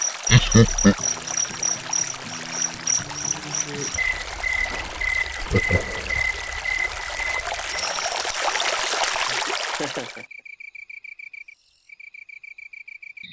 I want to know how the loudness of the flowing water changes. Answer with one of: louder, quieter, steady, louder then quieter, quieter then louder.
louder.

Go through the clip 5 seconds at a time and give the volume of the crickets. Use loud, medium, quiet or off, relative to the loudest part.
loud, loud, quiet.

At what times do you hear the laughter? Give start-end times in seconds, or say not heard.
0.2-0.9, 5.4-6.2, 9.2-10.2.